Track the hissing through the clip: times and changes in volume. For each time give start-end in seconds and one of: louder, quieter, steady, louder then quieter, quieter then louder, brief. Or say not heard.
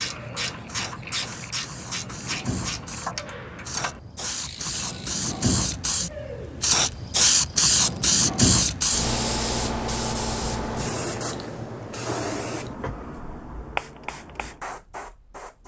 0.0-15.6 louder then quieter.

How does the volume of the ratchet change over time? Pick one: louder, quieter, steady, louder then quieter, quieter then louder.
quieter.